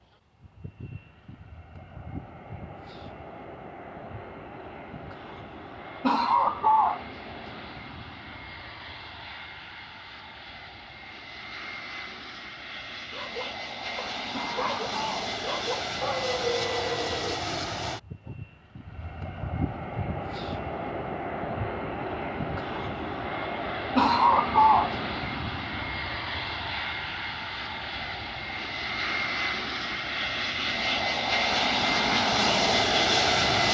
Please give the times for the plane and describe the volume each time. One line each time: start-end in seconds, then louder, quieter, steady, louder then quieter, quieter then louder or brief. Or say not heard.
0.4-33.7 louder.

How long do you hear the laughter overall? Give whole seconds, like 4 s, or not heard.
3 s.